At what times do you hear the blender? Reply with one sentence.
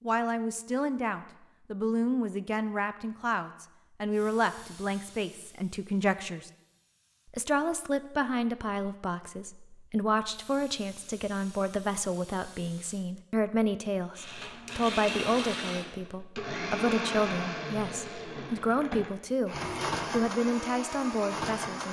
You can hear the blender from 14.2 to 21.8 s.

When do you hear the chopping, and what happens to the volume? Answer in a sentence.
The chopping can't be heard in this clip.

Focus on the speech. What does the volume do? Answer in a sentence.
The loudness of the speech stays about the same.